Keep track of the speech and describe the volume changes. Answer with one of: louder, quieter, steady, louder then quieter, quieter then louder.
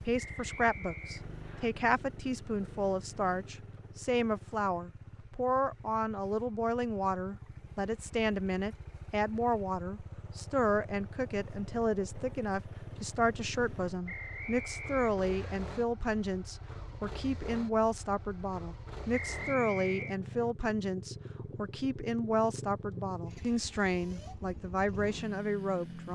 steady.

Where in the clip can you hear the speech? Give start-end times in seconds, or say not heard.
0.0-26.0.